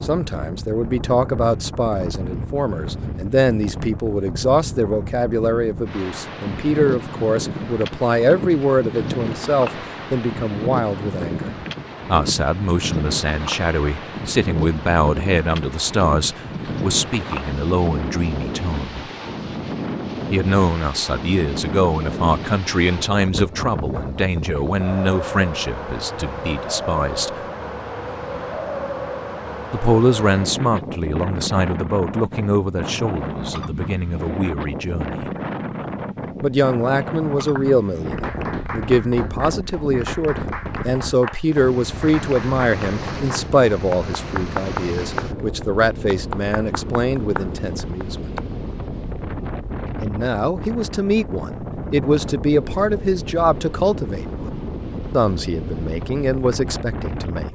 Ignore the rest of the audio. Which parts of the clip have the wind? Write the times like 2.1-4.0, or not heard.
0.0-57.4.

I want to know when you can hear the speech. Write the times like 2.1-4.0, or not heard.
0.0-19.1, 20.3-27.3, 29.7-35.2, 36.4-48.4, 50.0-54.4, 55.1-57.4.